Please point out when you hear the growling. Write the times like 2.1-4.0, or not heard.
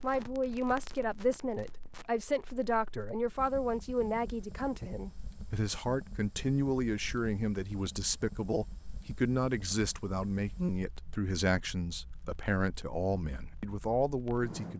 not heard.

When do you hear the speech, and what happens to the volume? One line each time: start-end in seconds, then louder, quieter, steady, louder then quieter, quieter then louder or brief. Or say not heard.
0.0-14.7 steady.